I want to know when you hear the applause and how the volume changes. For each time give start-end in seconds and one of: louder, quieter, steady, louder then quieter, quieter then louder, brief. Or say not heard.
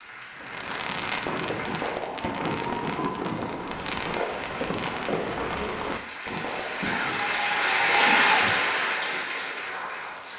0.0-10.3 louder.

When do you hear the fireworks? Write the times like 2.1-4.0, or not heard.
0.3-7.5.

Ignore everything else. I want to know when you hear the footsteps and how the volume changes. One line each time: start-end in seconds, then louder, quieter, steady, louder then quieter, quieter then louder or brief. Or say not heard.
not heard.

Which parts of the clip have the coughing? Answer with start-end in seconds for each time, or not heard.
6.7-8.7.